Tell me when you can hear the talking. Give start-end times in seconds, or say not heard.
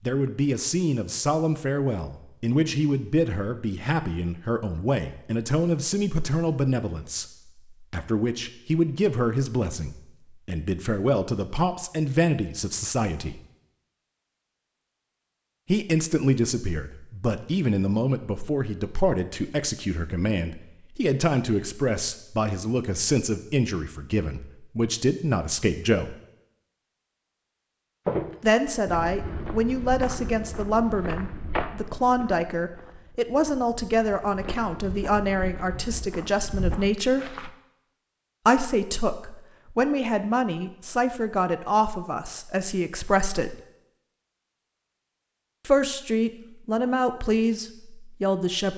0.0-13.4, 15.7-26.1, 28.4-37.3, 38.5-43.5, 45.6-48.7.